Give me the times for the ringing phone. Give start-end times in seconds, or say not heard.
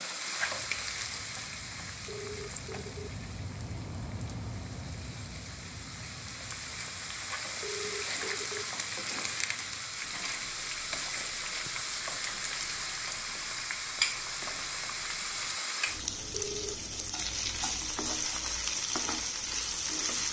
2.0-3.1, 7.6-8.7, 16.3-16.8.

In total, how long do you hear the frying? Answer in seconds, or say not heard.
20 s.